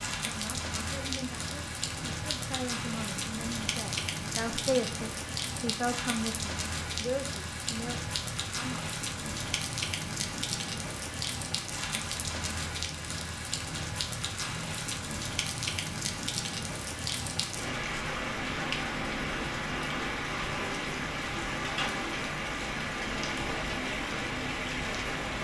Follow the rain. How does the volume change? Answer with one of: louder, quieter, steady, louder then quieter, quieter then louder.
steady.